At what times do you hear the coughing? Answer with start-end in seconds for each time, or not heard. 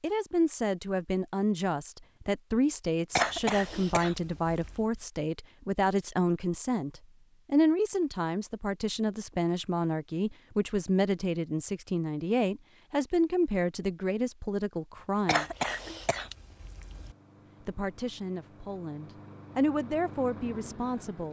3.1-4.8, 15.2-17.1.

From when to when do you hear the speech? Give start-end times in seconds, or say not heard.
0.0-15.4, 17.6-21.2.